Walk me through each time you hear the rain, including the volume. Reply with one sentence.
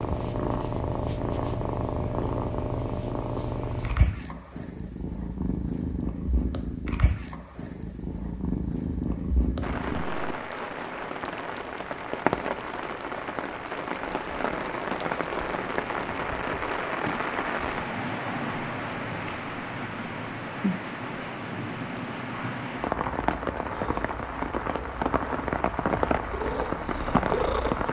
The rain can be heard from 9.6 to 27.8 s, at a steady volume.